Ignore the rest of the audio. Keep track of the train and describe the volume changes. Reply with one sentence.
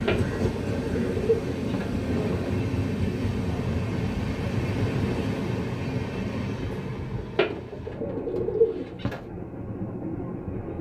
The volume of the train goes down.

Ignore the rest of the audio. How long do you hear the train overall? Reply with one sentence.
You can hear the train for 11 seconds altogether.